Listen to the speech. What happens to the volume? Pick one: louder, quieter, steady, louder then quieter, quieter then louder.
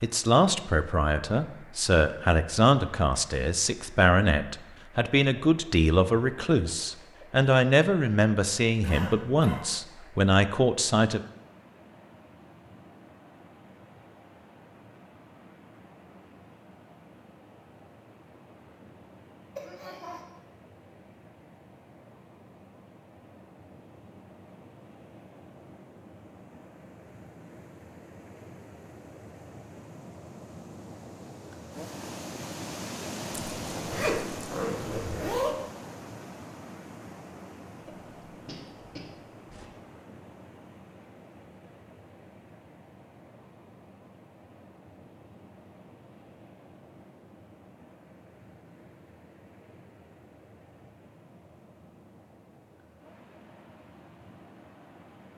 steady.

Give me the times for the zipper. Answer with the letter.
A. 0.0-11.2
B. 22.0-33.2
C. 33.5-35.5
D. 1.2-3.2
C.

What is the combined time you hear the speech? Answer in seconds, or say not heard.
11 s.